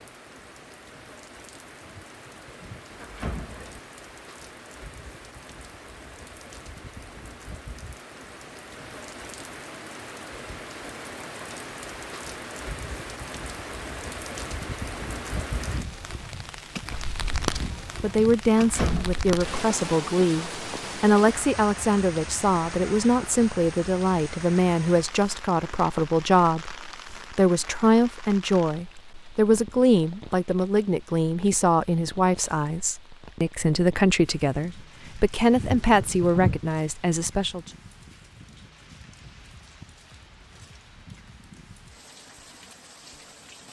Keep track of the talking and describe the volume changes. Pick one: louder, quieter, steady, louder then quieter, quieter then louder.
steady.